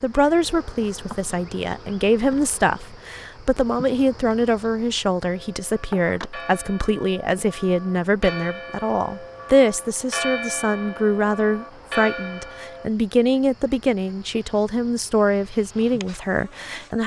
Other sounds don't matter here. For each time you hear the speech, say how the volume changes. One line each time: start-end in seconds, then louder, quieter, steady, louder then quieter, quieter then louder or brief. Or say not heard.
0.0-17.0 steady.